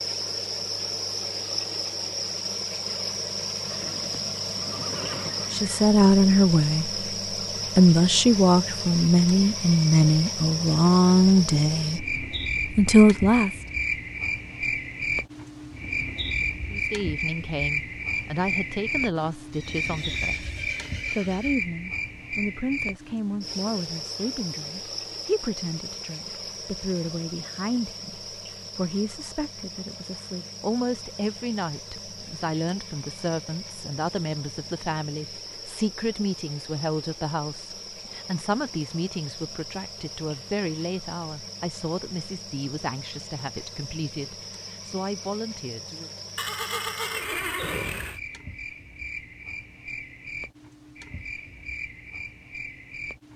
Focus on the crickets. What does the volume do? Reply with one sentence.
The loudness of the crickets goes down.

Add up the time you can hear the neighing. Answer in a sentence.
The neighing can be heard for 6 seconds in total.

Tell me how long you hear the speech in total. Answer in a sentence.
The speech can be heard for 36 seconds in total.